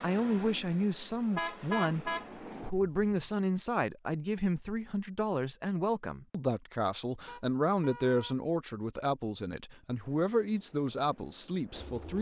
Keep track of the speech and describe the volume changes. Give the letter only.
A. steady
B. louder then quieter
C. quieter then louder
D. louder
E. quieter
A.